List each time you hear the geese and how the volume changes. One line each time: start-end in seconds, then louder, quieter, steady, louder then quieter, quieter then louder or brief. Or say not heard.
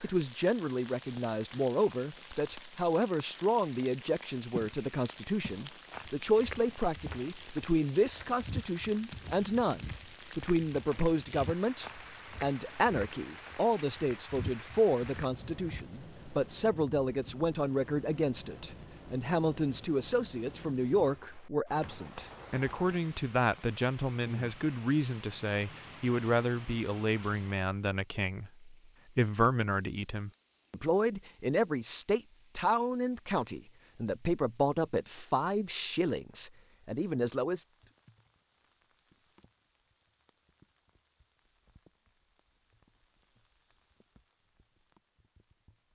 not heard.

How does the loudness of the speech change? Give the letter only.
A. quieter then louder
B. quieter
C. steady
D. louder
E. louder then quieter
C.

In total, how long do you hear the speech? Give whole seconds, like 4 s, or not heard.
38 s.